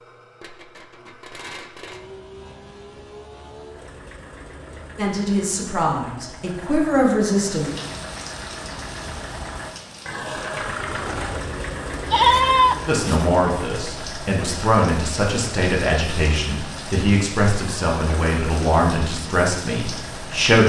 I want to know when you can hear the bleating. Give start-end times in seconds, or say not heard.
12.1-13.2.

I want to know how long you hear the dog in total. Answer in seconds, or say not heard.
not heard.